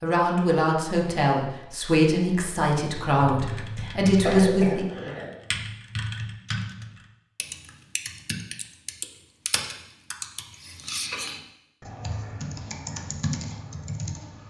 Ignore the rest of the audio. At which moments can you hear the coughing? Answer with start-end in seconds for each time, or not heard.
4.2-5.3.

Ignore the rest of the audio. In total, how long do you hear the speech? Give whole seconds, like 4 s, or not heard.
5 s.